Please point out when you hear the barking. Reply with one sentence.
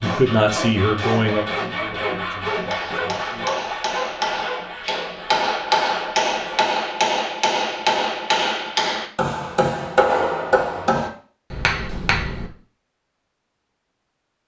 You can't hear the barking here.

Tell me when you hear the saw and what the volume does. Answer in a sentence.
You can hear the saw from 0.0 to 6.7 s, getting quieter.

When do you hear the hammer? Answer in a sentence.
You can hear the hammer from 2.4 to 12.5 s.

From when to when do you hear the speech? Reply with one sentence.
You can hear the speech from 0.0 to 3.8 s.